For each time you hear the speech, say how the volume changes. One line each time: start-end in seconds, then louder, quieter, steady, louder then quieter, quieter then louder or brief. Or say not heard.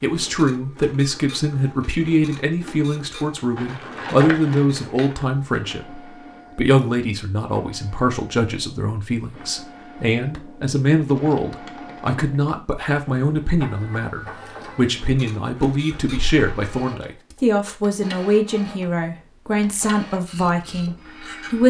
0.0-21.6 steady.